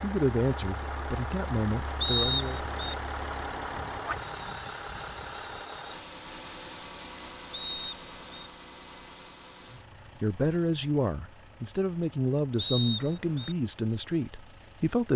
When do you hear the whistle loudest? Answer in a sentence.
The loudest moment of the whistle is at 2 seconds.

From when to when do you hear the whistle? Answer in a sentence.
The whistle can be heard from 2.0 to 3.0 s, from 7.5 to 8.5 s and from 12.6 to 13.6 s.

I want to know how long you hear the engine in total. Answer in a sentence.
The engine can be heard for 15 seconds in total.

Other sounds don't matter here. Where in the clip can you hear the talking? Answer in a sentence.
You can hear the talking from 0.0 to 2.6 s and from 9.7 to 15.1 s.